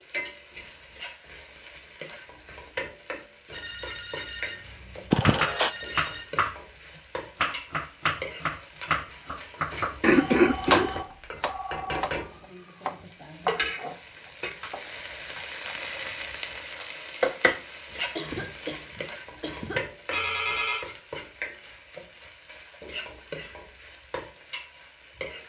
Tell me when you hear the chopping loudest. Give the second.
11 s.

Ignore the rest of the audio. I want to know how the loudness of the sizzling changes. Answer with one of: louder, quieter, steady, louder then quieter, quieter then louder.
louder then quieter.